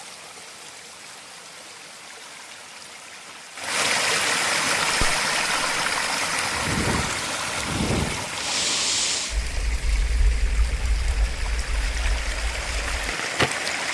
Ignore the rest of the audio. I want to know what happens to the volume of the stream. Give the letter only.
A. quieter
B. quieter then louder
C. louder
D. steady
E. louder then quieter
E.